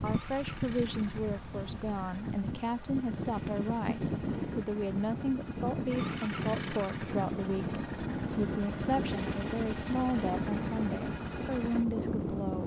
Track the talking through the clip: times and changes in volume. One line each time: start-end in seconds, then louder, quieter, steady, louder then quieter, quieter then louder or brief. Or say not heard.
0.0-12.6 steady.